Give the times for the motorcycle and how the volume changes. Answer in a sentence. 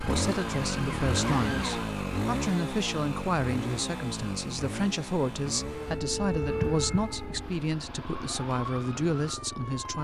The motorcycle can be heard from 0.0 to 10.0 s, getting quieter.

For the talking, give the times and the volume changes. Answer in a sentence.
You can hear the talking from 0.0 to 10.0 s, at a steady volume.